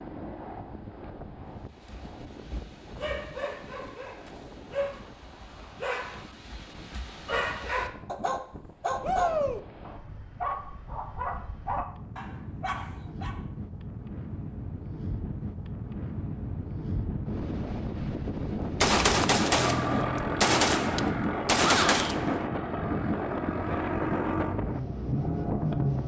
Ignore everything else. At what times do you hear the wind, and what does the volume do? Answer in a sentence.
The wind can be heard from 0.0 to 26.0 s, getting louder.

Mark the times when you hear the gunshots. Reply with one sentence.
The gunshots can be heard from 18.6 to 22.4 s.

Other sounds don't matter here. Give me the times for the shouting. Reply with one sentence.
The shouting can be heard from 9.0 to 9.6 s and from 21.6 to 22.1 s.